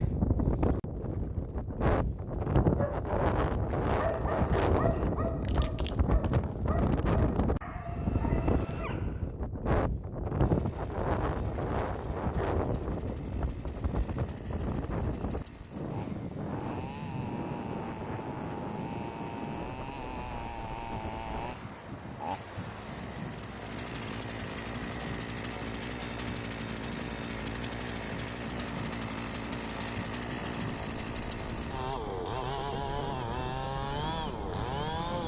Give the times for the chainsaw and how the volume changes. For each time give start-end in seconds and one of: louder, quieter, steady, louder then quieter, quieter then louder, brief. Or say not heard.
10.4-35.2 louder.